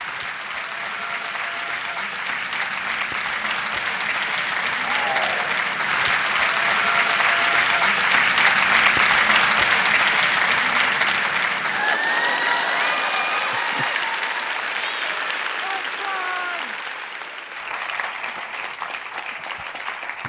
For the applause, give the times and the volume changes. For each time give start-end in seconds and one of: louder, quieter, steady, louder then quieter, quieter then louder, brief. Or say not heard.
0.0-20.2 louder then quieter.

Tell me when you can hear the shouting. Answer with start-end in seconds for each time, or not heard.
4.8-5.6, 15.6-16.8.